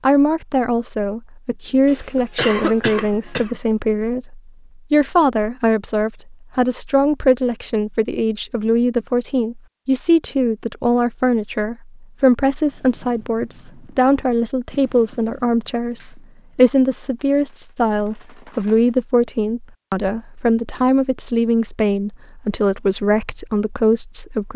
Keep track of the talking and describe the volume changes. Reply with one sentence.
The volume of the talking stays about the same.